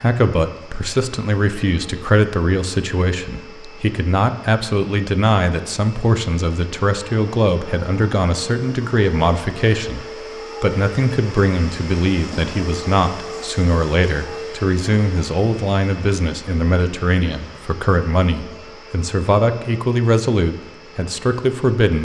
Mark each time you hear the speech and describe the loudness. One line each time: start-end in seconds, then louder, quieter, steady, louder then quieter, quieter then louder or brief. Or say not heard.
0.0-21.9 steady.